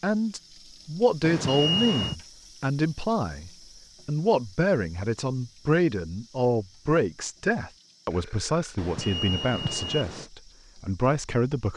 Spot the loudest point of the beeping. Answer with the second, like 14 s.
2 s.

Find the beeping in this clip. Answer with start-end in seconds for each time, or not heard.
1.2-2.1, 8.8-10.2.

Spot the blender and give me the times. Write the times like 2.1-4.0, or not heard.
not heard.